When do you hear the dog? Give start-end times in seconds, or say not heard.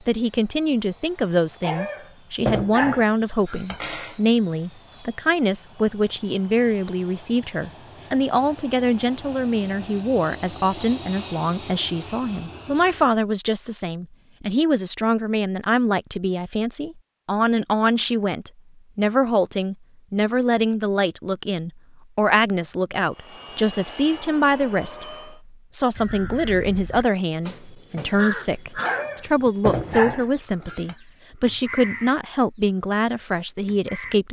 1.6-4.2, 28.8-30.9.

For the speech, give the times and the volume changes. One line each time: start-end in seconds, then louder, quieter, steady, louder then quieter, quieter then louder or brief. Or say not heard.
0.1-34.2 steady.